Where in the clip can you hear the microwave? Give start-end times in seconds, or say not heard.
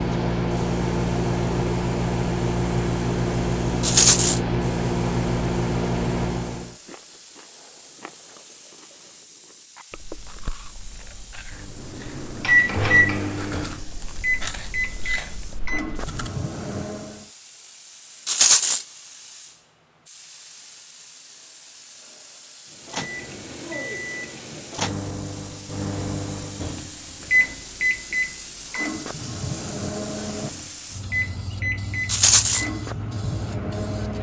0.0-6.8, 11.6-17.2, 22.7-34.1.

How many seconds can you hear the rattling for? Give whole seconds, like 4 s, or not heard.
2 s.